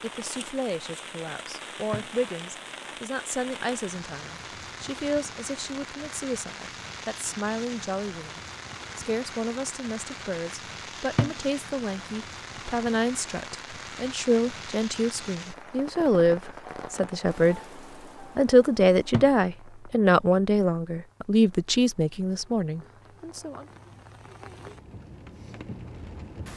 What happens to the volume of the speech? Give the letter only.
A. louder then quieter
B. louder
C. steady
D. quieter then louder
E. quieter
B.